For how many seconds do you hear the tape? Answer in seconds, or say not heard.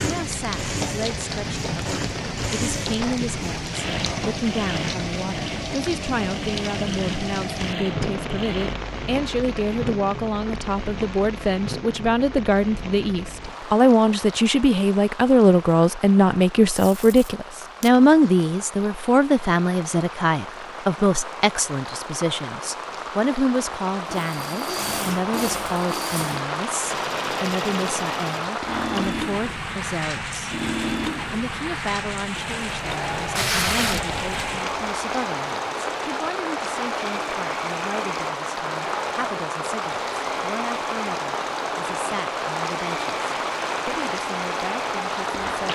2 s.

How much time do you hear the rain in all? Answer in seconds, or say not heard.
46 s.